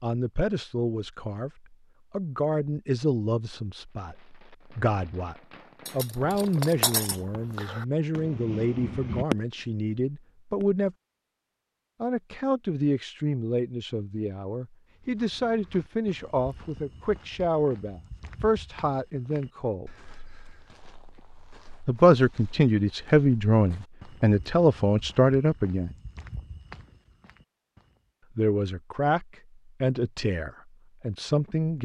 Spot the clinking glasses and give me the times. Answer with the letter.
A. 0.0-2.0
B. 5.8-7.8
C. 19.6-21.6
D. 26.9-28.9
B.